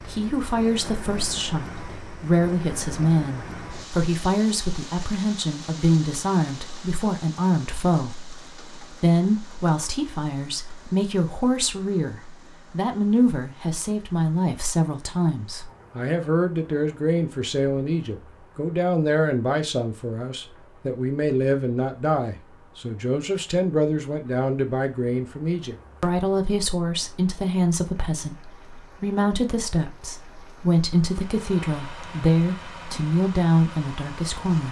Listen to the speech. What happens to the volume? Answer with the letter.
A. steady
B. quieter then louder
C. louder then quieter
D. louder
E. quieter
A.